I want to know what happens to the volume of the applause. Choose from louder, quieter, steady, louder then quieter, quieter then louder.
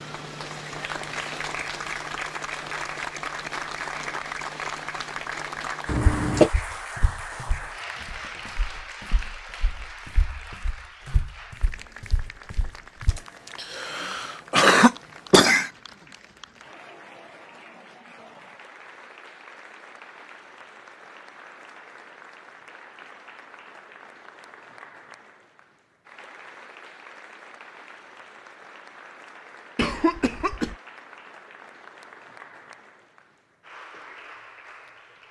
quieter.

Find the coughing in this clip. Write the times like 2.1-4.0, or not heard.
5.8-6.5, 13.2-15.7, 29.8-30.8.